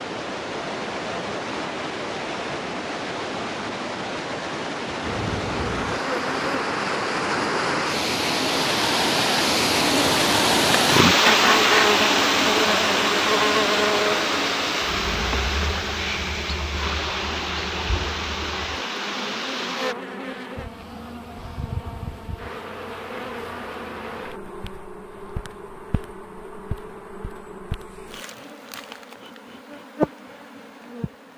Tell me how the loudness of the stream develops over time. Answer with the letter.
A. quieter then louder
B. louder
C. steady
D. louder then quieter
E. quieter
D.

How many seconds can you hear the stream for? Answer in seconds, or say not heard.
20 s.